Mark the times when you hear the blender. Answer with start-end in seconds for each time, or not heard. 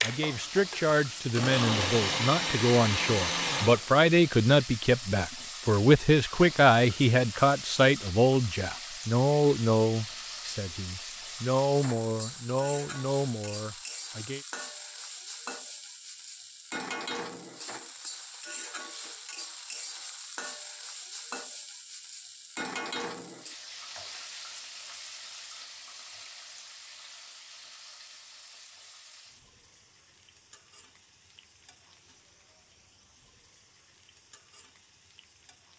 0.0-3.9.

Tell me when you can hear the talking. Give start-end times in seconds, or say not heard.
0.0-14.4.